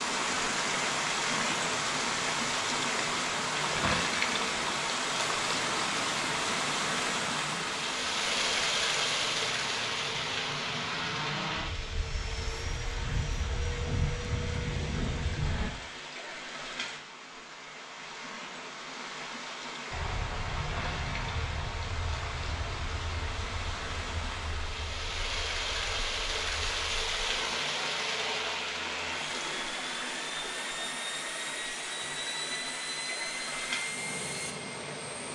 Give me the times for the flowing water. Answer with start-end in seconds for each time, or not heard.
0.0-35.2.